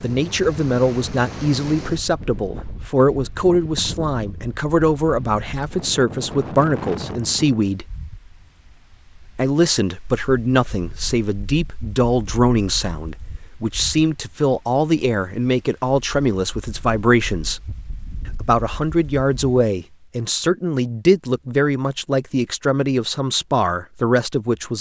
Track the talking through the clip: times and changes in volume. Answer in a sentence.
The talking can be heard from 0.0 to 7.9 s, at a steady volume; from 9.3 to 17.6 s, at a steady volume; and from 18.2 to 24.7 s, at a steady volume.